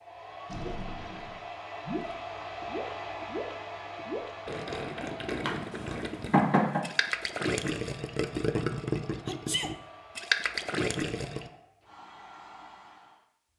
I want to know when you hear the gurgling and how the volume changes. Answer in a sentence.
You can hear the gurgling from 0.5 to 11.5 s, getting louder.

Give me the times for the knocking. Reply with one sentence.
You can hear the knocking from 5.5 to 6.8 s.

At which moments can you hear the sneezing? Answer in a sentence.
The sneezing can be heard from 9.2 to 9.8 s.